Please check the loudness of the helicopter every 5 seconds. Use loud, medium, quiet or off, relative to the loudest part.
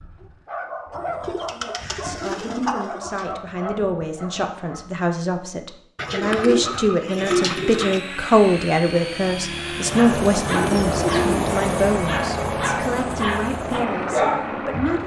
off, medium, loud.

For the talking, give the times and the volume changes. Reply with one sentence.
You can hear the talking from 2.0 to 15.0 s, getting louder then quieter.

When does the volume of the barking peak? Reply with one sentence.
The volume of the barking peaks at 14 seconds.